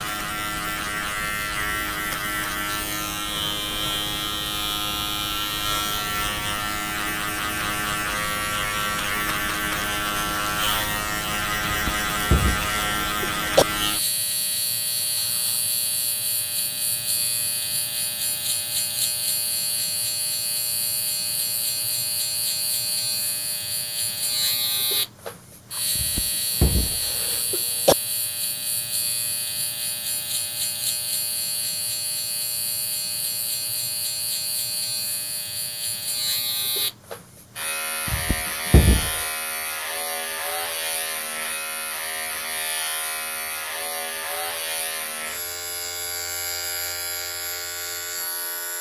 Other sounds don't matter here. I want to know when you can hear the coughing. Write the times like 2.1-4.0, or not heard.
11.7-13.7, 25.9-27.9, 38.0-39.2.